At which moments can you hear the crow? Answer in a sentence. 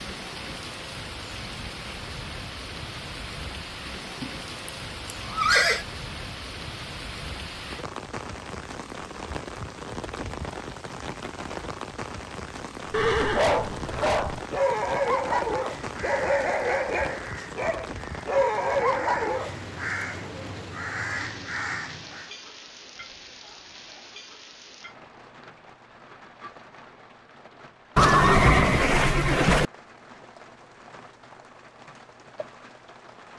The crow can be heard from 15.8 to 22.3 s.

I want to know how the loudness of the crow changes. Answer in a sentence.
The loudness of the crow goes down, then up.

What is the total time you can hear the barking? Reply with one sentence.
The barking can be heard for 7 seconds in total.